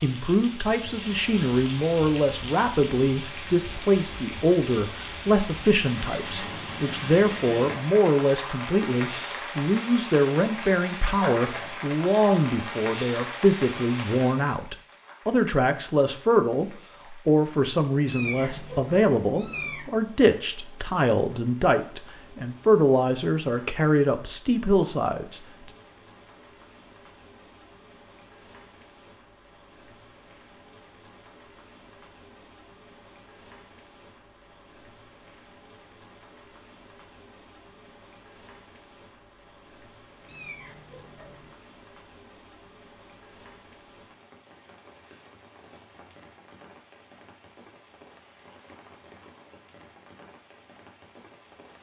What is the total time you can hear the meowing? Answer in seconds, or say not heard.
3 s.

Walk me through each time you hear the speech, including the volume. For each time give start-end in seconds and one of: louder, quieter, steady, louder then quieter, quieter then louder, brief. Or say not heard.
0.0-25.7 steady.